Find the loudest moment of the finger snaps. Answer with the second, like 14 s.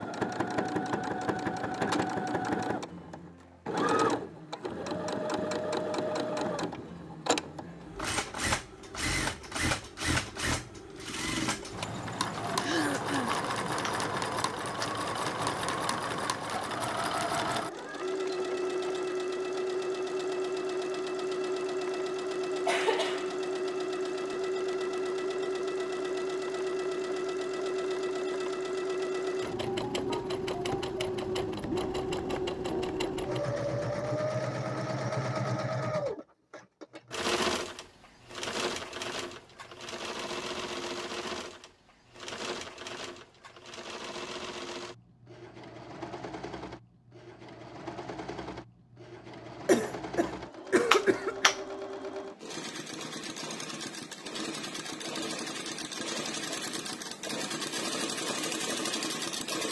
51 s.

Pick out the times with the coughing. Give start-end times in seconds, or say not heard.
12.6-13.4, 22.6-23.3, 49.6-51.5.